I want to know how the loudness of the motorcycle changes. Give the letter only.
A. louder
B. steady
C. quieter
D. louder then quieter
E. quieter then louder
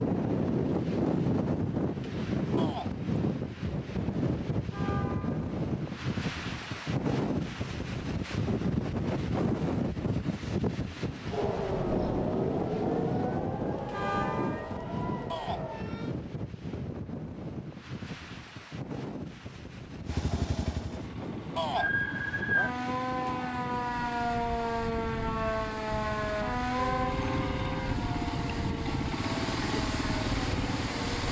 A.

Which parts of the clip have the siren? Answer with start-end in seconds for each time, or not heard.
11.3-16.1, 21.8-31.2.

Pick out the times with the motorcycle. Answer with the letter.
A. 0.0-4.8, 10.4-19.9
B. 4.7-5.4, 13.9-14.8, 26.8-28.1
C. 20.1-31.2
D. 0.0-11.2
C.